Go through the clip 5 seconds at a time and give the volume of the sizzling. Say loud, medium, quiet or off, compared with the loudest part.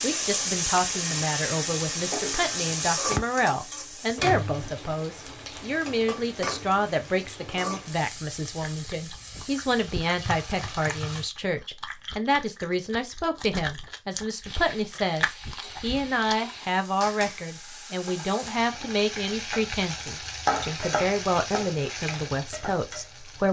loud, medium, medium, medium, loud.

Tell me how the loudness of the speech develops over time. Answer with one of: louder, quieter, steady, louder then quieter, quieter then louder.
steady.